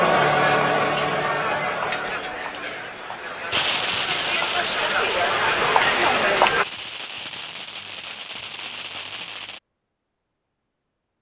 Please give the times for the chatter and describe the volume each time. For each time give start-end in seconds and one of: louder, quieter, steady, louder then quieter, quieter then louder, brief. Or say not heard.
0.0-6.7 quieter then louder.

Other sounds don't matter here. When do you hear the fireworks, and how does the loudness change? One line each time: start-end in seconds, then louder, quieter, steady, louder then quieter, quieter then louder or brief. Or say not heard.
3.5-9.6 quieter.